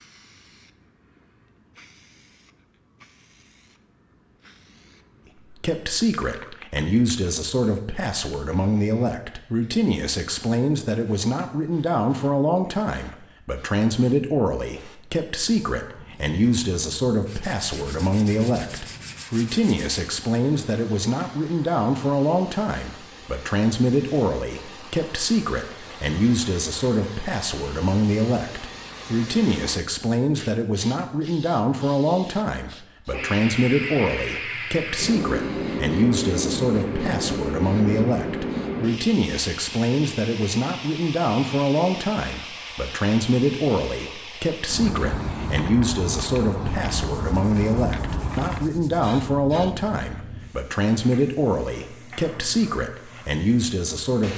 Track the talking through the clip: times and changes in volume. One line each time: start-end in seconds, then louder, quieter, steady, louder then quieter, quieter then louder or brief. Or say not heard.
5.5-54.3 steady.